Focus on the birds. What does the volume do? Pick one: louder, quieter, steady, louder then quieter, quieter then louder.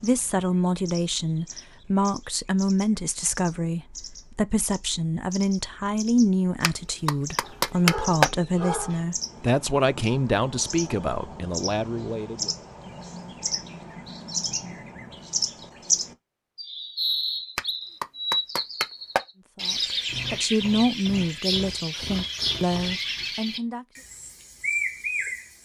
louder.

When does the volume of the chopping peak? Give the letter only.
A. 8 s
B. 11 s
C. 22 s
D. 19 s
A.